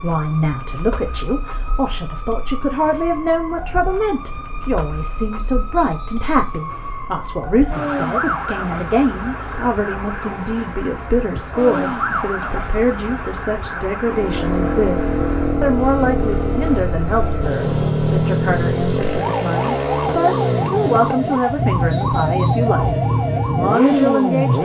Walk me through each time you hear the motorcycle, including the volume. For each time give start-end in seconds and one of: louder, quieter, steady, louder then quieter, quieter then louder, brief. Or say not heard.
14.0-24.5 steady.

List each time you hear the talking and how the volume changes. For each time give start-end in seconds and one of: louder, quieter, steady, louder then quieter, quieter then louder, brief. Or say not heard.
0.0-24.5 steady.